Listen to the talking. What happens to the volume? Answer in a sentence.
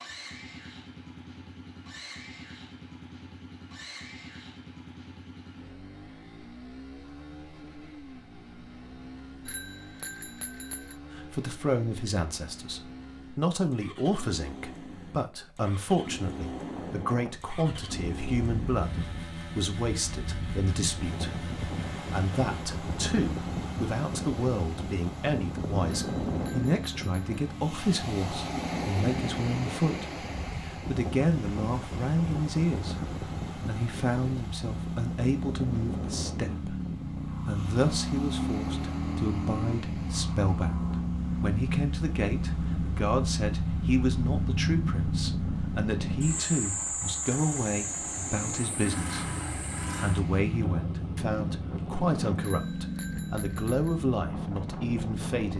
The volume of the talking stays about the same.